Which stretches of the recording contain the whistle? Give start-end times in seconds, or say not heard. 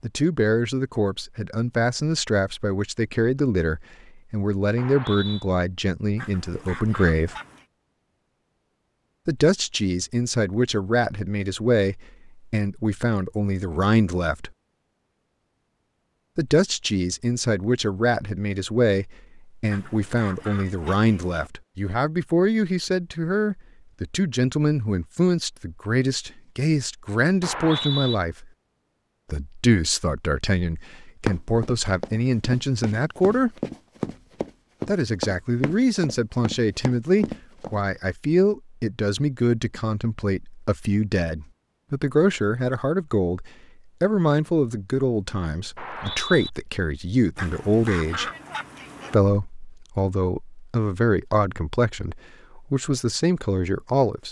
4.8-5.5, 27.4-28.1, 45.8-46.5.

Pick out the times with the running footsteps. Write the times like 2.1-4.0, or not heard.
31.2-37.8.